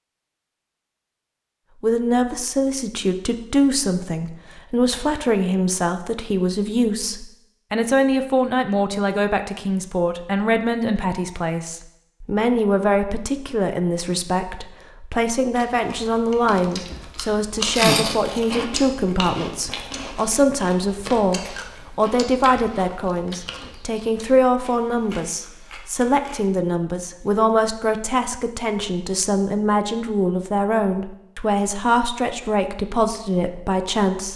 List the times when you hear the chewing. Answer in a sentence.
The chewing can be heard from 15.6 to 27.3 s.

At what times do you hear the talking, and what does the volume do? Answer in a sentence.
The talking can be heard from 1.8 to 34.3 s, at a steady volume.